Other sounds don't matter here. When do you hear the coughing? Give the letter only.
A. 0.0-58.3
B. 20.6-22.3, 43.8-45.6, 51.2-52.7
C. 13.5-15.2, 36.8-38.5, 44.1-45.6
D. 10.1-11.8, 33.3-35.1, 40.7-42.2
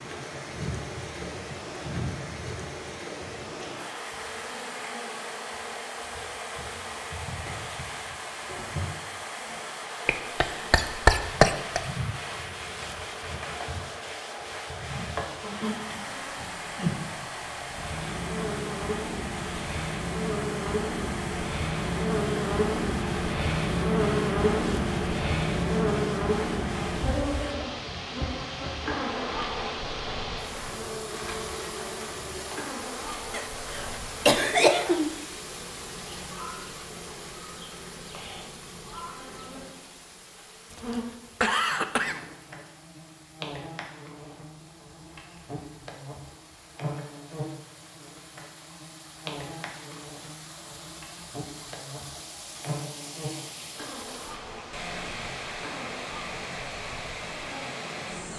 D.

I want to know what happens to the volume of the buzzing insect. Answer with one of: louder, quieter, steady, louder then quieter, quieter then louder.
louder then quieter.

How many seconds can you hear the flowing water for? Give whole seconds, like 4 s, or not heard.
58 s.